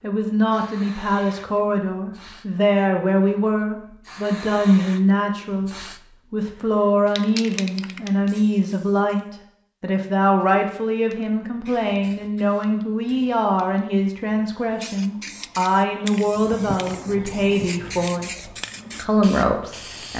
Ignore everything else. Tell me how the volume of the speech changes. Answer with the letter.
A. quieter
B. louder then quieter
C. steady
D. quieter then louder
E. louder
C.